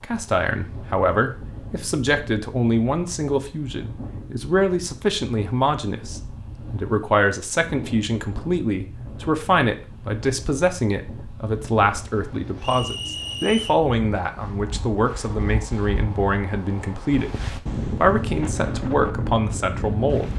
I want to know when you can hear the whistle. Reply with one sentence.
The whistle can be heard from 12.6 to 13.8 s.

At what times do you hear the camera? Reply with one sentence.
The camera can't be heard in this clip.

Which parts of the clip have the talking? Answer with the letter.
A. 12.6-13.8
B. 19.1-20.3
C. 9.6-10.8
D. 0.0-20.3
D.